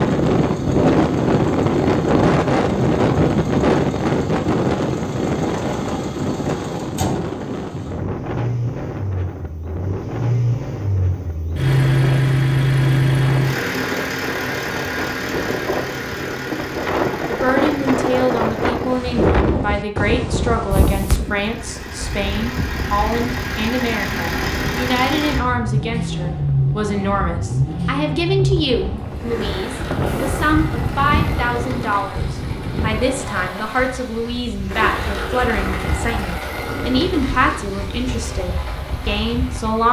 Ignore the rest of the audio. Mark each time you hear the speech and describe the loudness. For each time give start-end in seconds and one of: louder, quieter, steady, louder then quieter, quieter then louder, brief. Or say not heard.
17.2-39.8 steady.